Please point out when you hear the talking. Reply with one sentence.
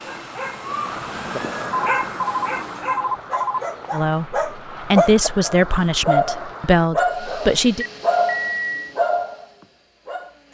The talking can be heard from 3.9 to 7.8 s.